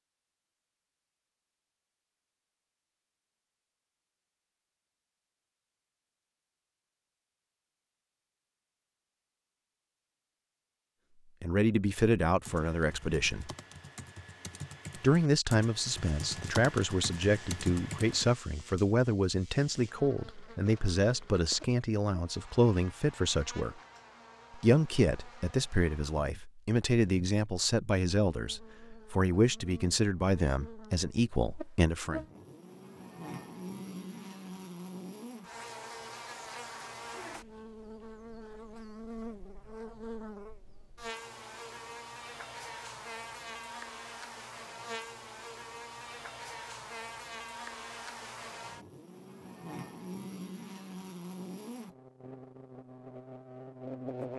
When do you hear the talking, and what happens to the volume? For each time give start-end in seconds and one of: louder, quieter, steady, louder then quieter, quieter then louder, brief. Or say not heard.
11.4-13.5 brief
14.9-23.8 steady
24.6-32.2 steady.